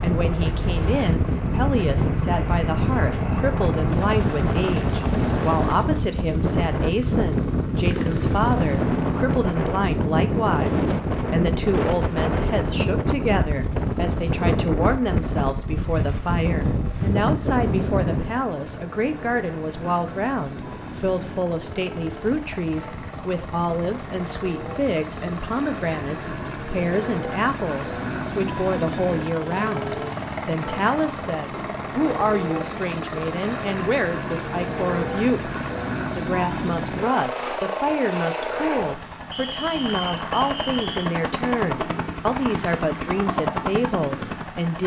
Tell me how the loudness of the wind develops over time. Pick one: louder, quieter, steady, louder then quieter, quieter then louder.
quieter.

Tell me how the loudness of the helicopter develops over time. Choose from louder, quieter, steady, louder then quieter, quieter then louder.
quieter then louder.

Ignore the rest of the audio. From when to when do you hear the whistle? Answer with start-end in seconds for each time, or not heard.
39.3-41.1.